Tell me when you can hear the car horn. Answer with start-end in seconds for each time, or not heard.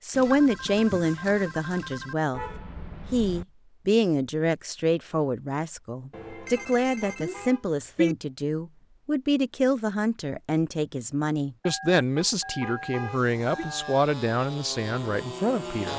2.3-3.5, 6.5-8.2, 12.2-13.7.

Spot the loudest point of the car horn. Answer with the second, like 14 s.
8 s.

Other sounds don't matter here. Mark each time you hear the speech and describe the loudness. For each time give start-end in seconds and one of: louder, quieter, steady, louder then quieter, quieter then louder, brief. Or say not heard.
0.0-2.4 brief
3.1-15.9 steady.